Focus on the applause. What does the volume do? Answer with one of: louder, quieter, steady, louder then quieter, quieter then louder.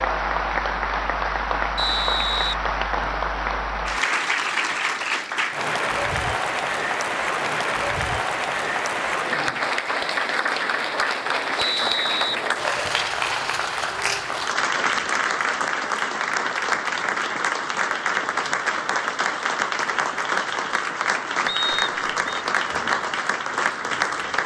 steady.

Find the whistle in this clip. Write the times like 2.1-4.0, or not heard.
1.8-3.2, 11.6-13.1, 21.4-22.2.